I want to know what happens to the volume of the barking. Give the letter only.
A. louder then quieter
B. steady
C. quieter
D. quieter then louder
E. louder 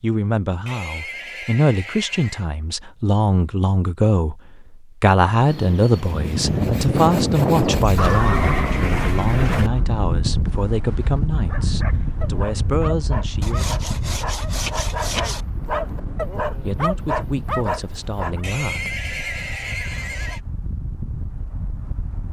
E.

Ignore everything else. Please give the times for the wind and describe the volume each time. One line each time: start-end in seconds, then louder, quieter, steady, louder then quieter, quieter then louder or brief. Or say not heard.
6.0-22.2 quieter.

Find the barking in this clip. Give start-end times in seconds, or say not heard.
11.3-18.4.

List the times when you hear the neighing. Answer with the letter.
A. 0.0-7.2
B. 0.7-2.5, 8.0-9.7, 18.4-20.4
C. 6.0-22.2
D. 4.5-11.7
B.